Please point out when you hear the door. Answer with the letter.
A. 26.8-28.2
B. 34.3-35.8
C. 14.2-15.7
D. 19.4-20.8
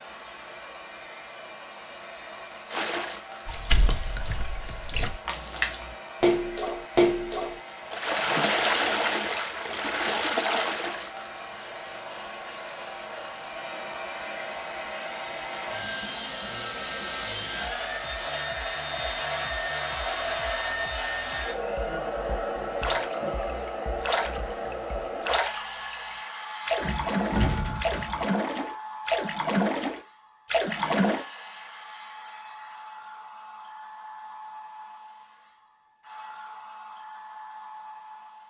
A.